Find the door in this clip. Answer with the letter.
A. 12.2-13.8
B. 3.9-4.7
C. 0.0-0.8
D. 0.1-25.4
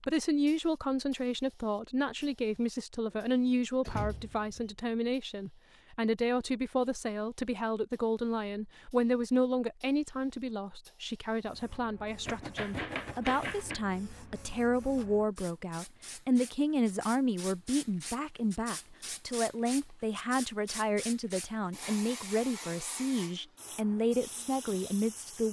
B.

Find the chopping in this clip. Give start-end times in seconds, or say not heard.
12.2-13.8.